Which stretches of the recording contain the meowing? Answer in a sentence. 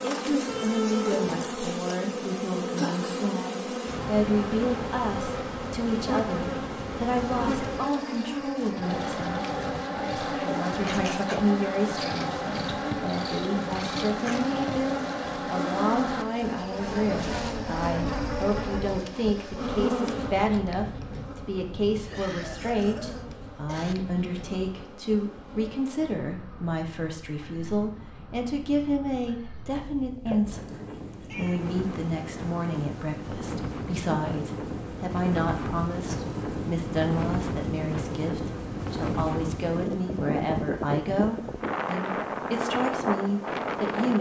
You can hear the meowing from 0.5 to 1.4 s and from 30.2 to 31.6 s.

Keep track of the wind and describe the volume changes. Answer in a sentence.
The volume of the wind goes down, then up.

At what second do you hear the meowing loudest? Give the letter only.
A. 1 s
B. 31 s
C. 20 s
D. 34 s
A.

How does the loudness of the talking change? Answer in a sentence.
The volume of the talking stays about the same.